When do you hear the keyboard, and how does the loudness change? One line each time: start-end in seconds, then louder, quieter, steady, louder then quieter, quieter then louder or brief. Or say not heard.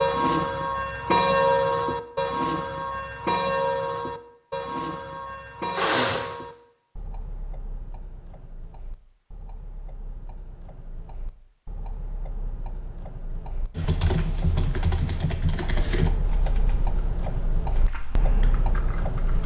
13.8-19.4 quieter then louder.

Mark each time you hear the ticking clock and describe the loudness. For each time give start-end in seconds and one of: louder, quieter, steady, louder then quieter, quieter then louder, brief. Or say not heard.
0.0-19.4 quieter then louder.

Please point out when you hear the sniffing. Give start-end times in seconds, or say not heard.
5.7-6.3.